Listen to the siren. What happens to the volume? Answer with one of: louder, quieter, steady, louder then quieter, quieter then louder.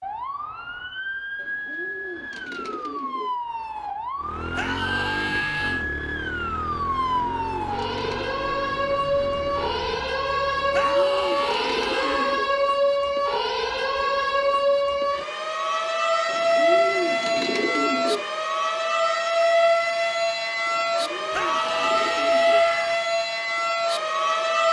louder.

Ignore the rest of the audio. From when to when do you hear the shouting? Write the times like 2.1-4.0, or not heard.
4.5-5.8, 10.7-12.3, 21.3-22.9.